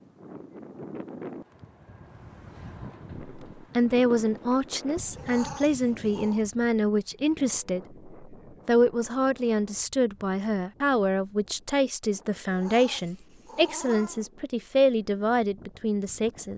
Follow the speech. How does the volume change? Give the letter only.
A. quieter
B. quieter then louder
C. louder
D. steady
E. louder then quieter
D.